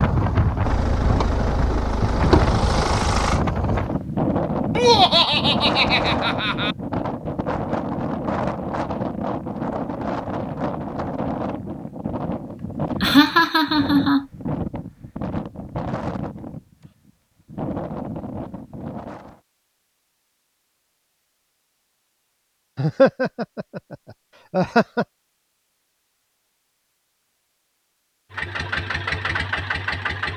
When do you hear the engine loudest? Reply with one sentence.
The loudest moment of the engine is at 3 seconds.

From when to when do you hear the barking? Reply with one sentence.
The barking can't be heard in this clip.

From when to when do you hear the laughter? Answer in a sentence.
The laughter can be heard from 4.8 to 6.8 s, from 13.0 to 14.2 s and from 22.8 to 25.1 s.